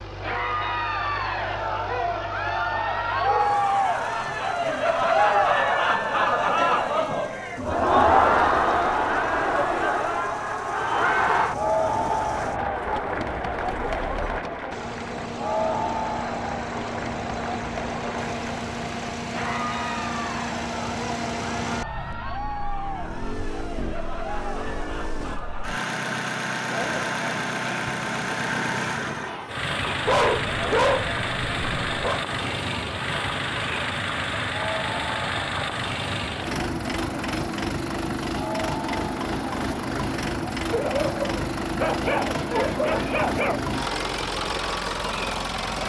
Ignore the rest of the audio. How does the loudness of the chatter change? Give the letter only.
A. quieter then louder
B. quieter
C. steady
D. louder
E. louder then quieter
B.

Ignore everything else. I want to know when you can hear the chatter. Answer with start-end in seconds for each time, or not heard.
0.1-45.8.